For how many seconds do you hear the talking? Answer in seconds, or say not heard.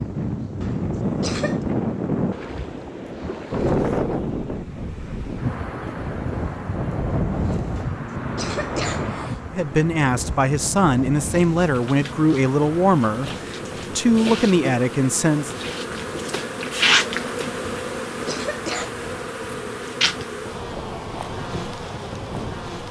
6 s.